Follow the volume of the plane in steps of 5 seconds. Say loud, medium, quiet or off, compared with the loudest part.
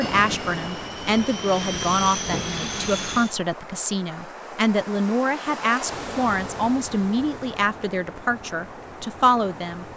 loud, off.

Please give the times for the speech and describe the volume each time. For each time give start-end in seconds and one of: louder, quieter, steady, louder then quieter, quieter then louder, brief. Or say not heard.
0.0-9.8 steady.